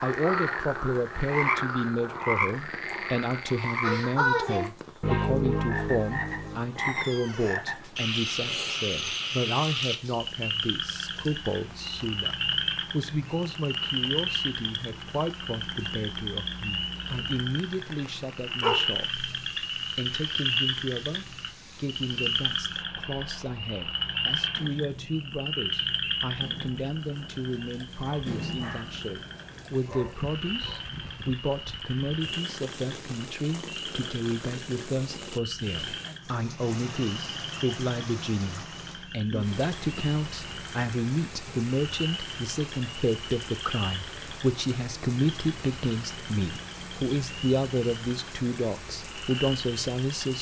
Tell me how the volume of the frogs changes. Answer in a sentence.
The volume of the frogs goes down.